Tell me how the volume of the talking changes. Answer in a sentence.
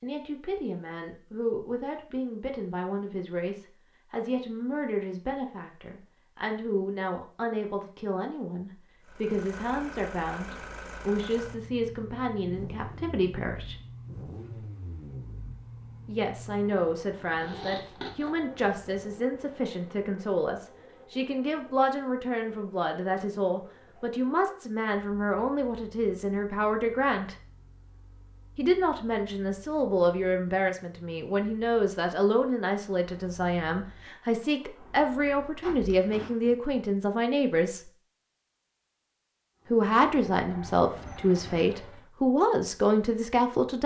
The volume of the talking goes up.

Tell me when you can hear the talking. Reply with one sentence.
The talking can be heard from 0.0 to 13.8 s, from 16.1 to 27.4 s, from 28.6 to 37.9 s and from 39.7 to 43.8 s.